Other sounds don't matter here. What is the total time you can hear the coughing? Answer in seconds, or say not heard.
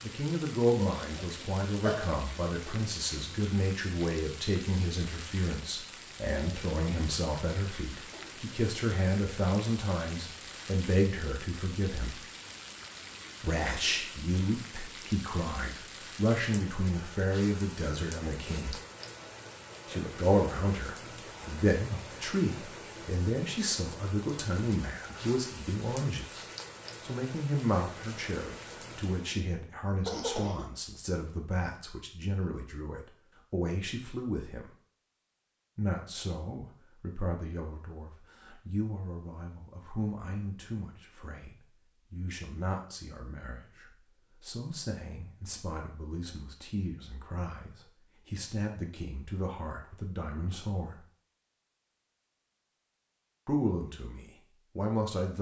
2 s.